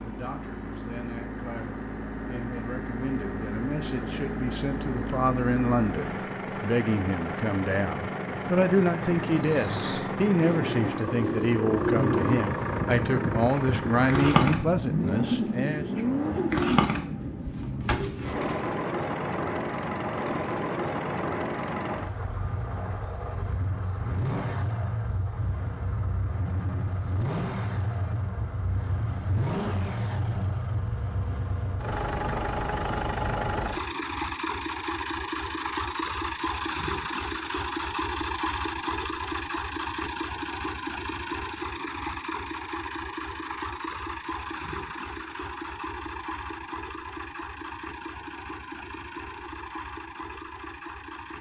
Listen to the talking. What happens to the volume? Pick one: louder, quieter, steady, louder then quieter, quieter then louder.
louder.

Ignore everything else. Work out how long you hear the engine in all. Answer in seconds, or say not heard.
51 s.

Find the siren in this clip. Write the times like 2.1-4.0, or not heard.
not heard.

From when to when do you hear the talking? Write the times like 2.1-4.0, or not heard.
0.0-15.8.